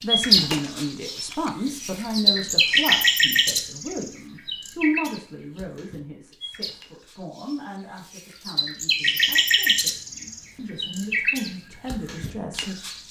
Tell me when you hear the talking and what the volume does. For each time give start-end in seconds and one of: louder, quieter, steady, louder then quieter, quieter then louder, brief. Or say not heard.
0.0-12.8 quieter then louder.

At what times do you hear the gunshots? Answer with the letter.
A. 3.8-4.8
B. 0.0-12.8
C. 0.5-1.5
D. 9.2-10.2
C.